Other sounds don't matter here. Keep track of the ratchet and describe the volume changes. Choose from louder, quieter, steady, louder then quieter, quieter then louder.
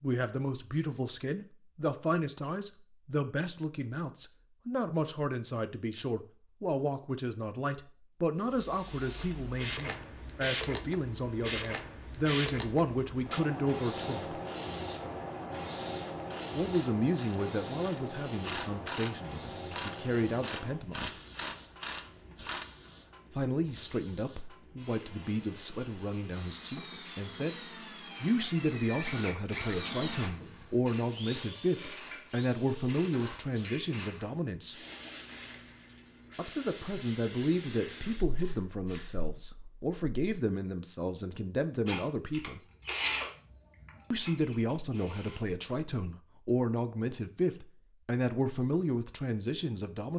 louder.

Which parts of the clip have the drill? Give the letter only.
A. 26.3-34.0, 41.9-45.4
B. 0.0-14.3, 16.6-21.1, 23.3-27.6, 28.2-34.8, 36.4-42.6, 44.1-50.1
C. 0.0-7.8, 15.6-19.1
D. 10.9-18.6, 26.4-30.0
A.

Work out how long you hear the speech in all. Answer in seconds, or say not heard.
42 s.